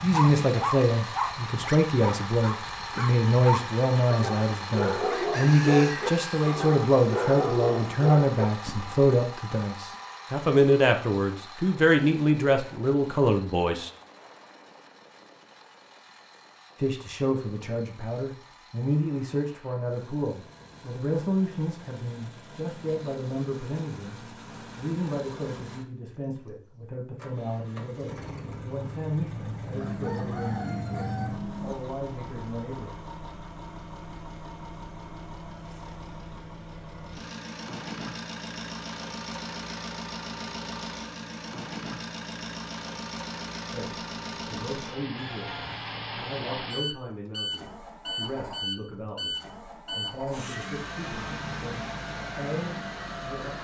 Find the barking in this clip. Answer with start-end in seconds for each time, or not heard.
0.0-9.1.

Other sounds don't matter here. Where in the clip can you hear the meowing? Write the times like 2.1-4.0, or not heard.
not heard.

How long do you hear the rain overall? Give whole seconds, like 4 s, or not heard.
not heard.